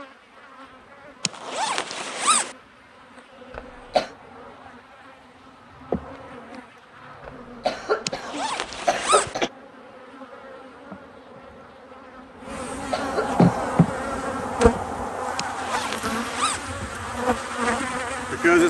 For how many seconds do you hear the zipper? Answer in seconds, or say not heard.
4 s.